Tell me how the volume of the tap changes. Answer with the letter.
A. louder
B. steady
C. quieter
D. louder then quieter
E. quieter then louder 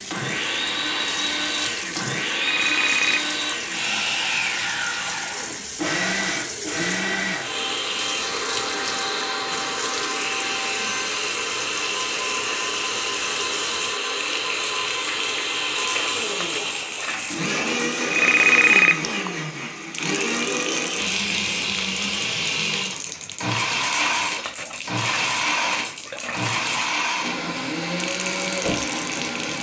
B.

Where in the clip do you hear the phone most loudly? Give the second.
19 s.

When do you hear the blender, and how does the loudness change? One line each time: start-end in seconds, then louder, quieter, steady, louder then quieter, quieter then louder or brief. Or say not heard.
0.1-29.5 steady.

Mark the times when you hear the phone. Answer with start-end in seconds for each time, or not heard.
2.4-3.4, 18.1-19.3.